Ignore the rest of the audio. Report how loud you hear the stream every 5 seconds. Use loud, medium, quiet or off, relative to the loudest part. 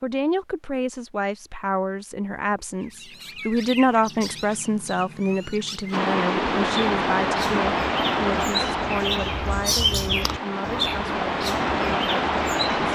off, loud, loud.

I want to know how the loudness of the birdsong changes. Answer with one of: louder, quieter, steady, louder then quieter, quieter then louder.
louder then quieter.